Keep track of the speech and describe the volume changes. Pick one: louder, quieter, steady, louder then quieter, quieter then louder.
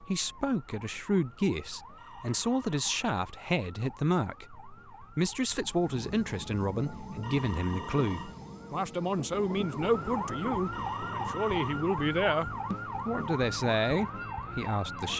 steady.